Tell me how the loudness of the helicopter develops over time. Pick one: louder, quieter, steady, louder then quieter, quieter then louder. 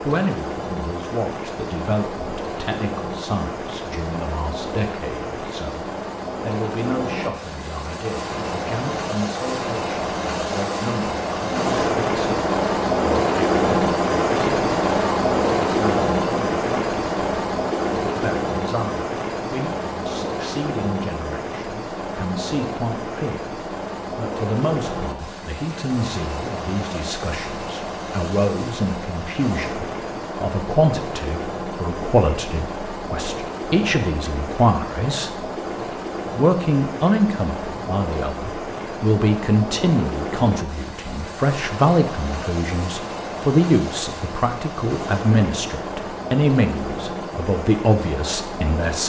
louder then quieter.